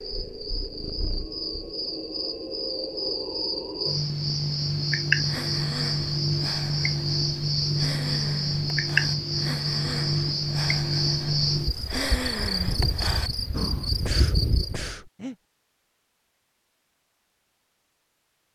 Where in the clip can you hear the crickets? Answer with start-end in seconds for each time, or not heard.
0.0-14.9.